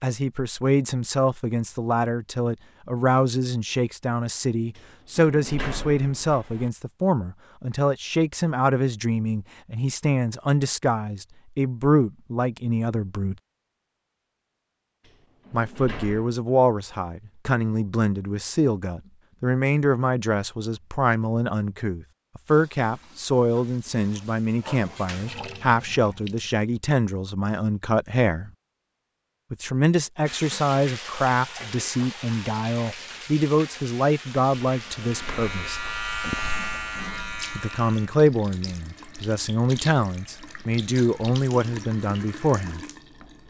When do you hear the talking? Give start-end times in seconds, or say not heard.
0.0-13.3, 15.5-28.5, 29.5-35.8, 37.5-42.8.